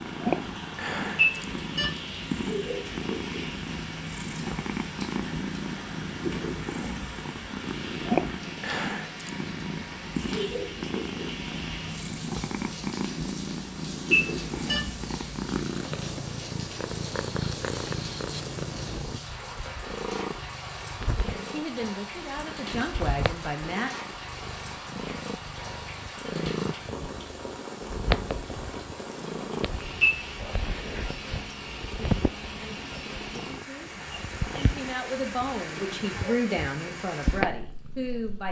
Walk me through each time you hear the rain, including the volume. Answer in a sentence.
The rain can be heard from 0.0 to 38.4 s, at a steady volume.